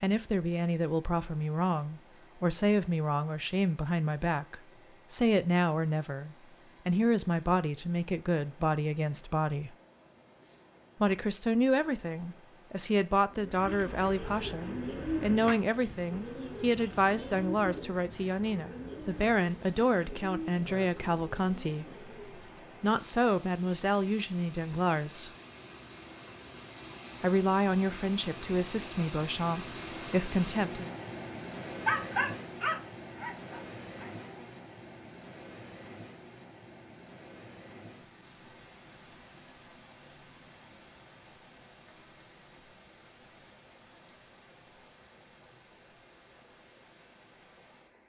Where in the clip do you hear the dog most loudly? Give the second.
32 s.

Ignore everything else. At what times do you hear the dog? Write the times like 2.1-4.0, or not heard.
31.9-34.5.